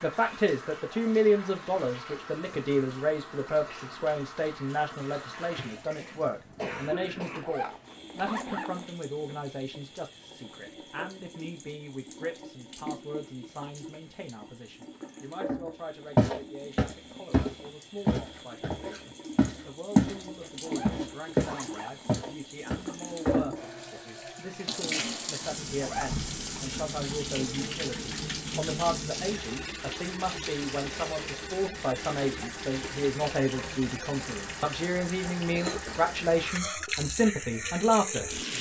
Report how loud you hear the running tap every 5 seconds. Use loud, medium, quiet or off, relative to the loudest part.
medium, medium, medium, medium, loud, loud, loud, loud.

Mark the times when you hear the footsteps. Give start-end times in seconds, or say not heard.
16.1-20.2, 20.9-23.4.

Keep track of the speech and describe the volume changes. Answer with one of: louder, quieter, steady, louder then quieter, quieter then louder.
quieter then louder.